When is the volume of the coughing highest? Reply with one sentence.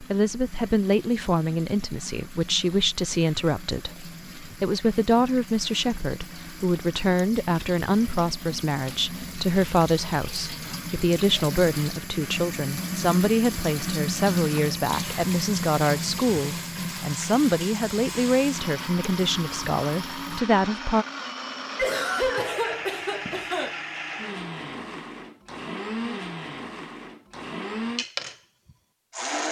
The loudest moment of the coughing is at 22 seconds.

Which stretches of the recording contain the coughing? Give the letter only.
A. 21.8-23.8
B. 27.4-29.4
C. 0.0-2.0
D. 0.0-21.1
A.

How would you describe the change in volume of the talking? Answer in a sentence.
The loudness of the talking stays about the same.